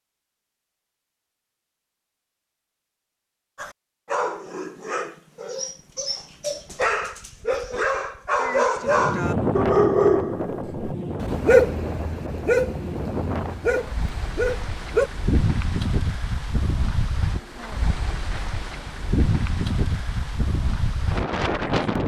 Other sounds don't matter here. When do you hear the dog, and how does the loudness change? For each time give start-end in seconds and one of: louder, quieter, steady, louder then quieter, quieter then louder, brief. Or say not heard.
3.5-15.1 louder then quieter.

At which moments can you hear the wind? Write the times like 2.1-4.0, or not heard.
8.8-22.0.